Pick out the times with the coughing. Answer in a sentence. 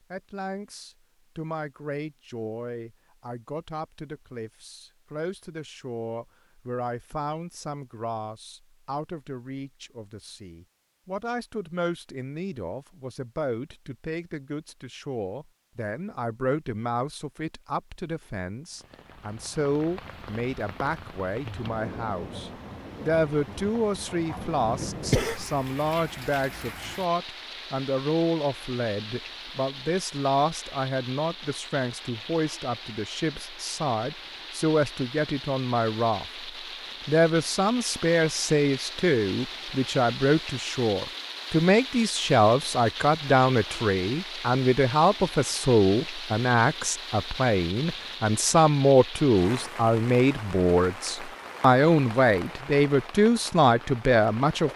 You can hear the coughing from 24.6 to 25.4 s.